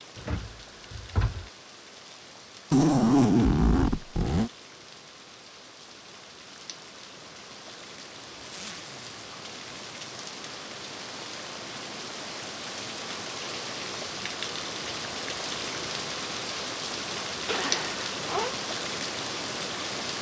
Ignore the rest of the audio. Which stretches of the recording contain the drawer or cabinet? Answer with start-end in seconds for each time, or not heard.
0.1-1.5.